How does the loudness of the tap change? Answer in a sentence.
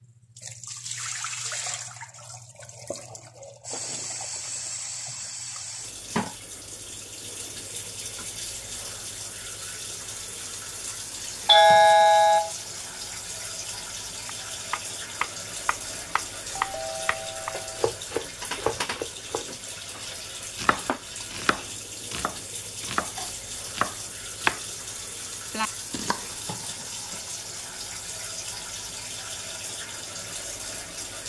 The loudness of the tap stays about the same.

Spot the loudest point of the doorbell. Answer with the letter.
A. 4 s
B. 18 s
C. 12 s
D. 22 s
C.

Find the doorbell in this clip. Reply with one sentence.
The doorbell can be heard from 11.4 to 12.5 s and from 16.6 to 17.8 s.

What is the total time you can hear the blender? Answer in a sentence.
The blender can't be heard in this clip.